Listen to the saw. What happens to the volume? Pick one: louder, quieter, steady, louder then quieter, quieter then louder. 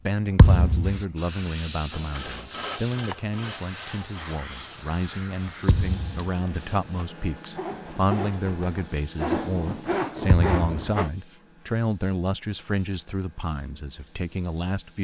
quieter then louder.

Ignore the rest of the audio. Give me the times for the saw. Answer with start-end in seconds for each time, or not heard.
1.9-11.1.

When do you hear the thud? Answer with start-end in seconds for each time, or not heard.
0.3-1.0, 5.7-6.2, 10.2-10.7.